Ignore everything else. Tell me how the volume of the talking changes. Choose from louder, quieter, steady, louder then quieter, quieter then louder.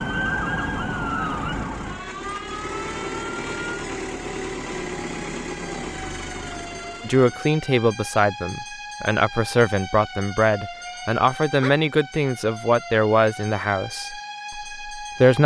quieter.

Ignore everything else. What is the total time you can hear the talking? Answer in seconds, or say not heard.
8 s.